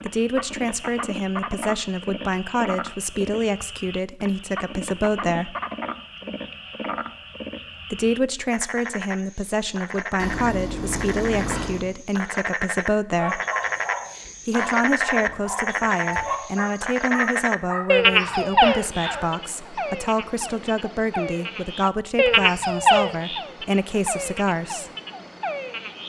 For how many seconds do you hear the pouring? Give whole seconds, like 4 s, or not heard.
2 s.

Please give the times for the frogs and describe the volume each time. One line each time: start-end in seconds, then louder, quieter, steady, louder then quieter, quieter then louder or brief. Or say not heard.
0.0-26.0 louder.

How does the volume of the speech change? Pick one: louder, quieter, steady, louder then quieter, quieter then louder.
steady.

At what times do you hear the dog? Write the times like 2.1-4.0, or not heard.
13.2-19.2.